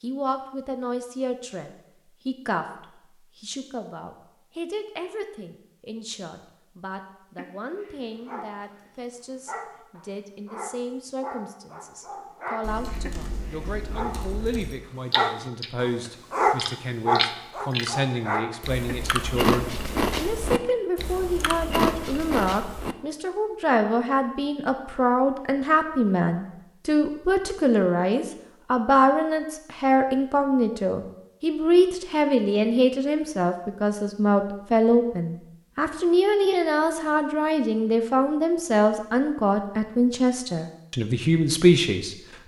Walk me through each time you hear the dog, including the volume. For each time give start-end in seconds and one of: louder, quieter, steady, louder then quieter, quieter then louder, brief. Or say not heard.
7.3-18.8 louder.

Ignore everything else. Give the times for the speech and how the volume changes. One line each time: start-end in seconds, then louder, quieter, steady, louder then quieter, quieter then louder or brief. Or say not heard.
0.0-42.4 louder.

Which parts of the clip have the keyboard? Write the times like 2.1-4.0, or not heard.
12.6-14.7.